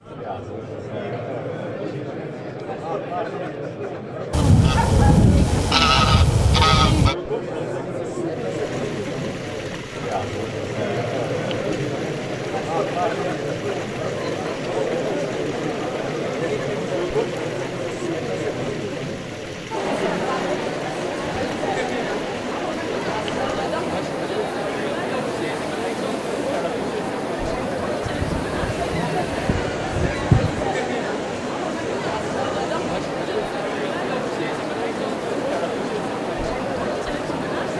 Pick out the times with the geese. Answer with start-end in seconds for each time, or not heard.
4.3-7.2, 28.0-30.7.